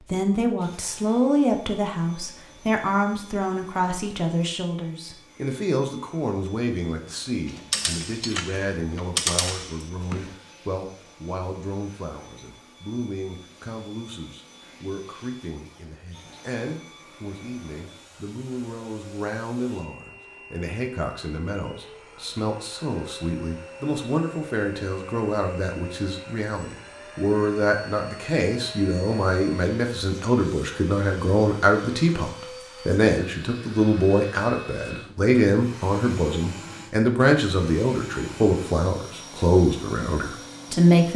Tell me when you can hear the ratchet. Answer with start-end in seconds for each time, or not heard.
7.5-10.3.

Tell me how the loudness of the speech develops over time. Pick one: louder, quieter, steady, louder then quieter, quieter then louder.
quieter then louder.